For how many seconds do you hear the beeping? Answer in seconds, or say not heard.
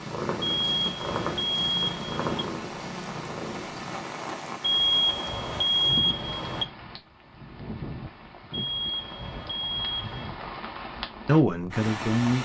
6 s.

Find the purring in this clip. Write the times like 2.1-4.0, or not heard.
0.0-4.2.